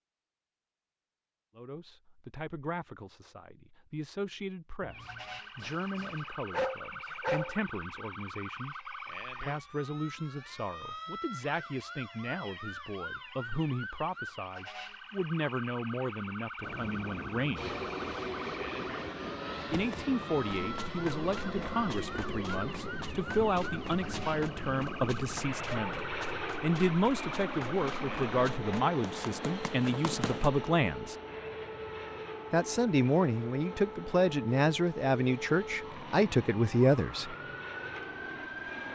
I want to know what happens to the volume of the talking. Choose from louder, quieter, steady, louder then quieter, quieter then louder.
louder.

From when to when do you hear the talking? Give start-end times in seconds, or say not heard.
1.6-17.8, 19.7-31.1, 32.5-37.4.